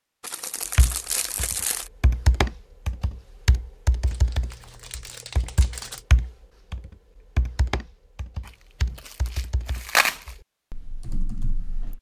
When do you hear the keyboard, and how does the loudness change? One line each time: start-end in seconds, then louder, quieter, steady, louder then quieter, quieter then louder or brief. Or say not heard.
0.8-11.9 quieter.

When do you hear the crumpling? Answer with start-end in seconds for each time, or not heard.
0.2-1.9, 4.0-6.0, 8.4-10.3.